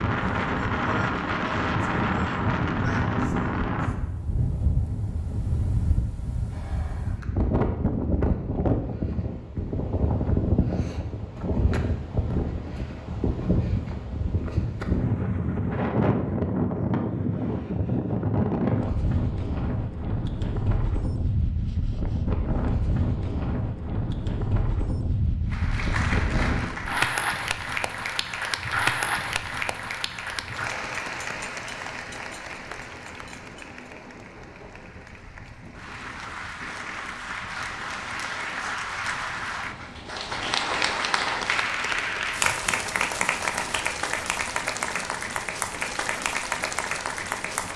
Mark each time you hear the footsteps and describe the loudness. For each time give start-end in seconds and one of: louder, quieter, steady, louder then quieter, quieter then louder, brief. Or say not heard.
not heard.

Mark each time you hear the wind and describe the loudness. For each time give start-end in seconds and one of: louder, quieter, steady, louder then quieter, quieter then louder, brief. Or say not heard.
0.0-47.7 quieter.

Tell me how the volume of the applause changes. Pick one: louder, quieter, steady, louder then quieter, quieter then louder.
quieter then louder.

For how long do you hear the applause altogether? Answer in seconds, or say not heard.
22 s.